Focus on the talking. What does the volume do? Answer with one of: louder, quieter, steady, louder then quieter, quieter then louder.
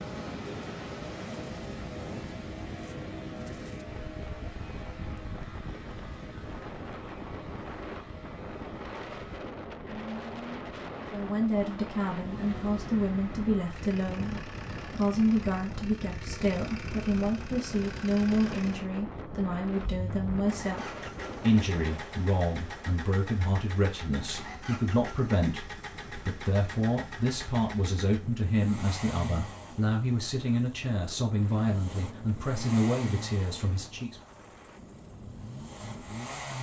steady.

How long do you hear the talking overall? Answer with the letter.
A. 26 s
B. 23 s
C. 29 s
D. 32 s
B.